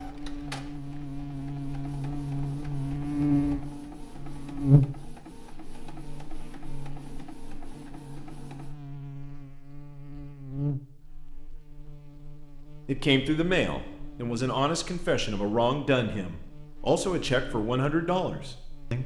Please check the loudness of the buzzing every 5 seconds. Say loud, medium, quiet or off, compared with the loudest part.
loud, quiet, medium, quiet.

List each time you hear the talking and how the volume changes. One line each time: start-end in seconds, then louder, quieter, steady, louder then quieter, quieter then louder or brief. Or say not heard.
12.8-19.0 steady.